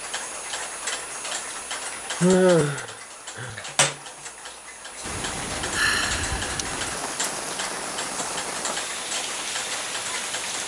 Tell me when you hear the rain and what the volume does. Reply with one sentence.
The rain can be heard from 5.0 to 10.6 s, at a steady volume.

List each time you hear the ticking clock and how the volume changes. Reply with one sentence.
You can hear the ticking clock from 0.0 to 10.6 s, at a steady volume.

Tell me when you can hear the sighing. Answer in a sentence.
The sighing can be heard from 2.2 to 3.6 s and from 5.7 to 6.5 s.